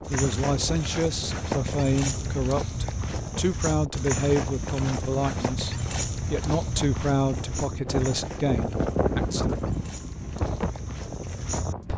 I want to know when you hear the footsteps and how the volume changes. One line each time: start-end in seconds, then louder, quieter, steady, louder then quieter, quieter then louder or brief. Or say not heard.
0.0-11.9 quieter.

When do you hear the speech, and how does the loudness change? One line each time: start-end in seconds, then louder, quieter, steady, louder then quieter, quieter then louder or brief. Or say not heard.
0.1-9.6 steady.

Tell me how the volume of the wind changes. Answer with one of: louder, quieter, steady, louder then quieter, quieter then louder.
louder.